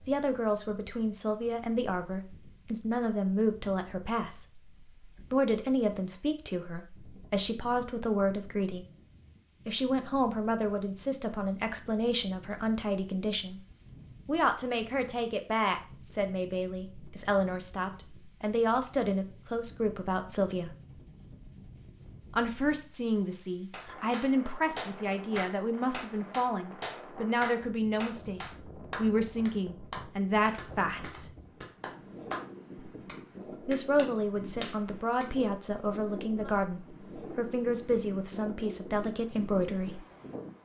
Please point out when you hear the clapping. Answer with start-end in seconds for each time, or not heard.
23.7-35.3.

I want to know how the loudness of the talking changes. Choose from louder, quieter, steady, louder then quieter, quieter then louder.
steady.